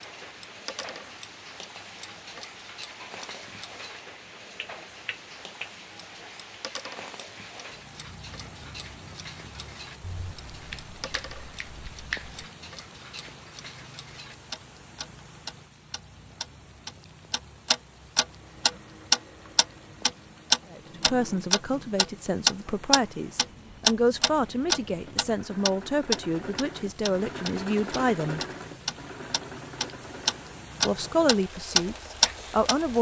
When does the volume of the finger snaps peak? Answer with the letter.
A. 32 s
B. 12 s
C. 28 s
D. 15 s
B.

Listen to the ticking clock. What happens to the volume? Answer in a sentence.
The loudness of the ticking clock goes up.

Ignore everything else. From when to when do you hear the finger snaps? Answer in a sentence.
The finger snaps can be heard from 10.0 to 12.4 s.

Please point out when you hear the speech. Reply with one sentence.
The speech can be heard from 20.7 to 28.4 s and from 30.9 to 32.9 s.